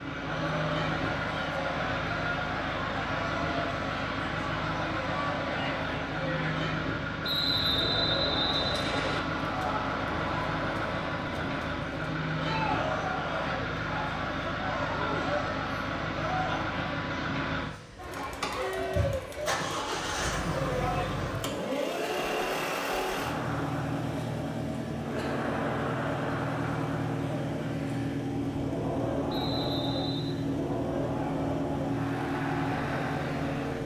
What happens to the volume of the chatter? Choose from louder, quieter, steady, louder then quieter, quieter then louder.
steady.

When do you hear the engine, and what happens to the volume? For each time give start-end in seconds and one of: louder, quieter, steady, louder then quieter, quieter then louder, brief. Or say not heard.
0.0-33.8 steady.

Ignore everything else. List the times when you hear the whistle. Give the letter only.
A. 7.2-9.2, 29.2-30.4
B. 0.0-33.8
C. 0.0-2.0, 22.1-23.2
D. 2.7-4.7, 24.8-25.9
A.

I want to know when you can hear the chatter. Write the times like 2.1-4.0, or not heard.
0.1-33.8.